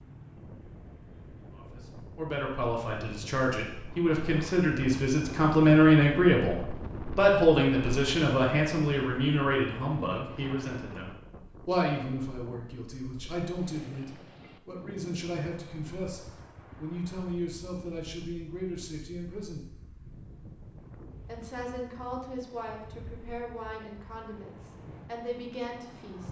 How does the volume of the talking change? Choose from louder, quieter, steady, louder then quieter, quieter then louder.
quieter.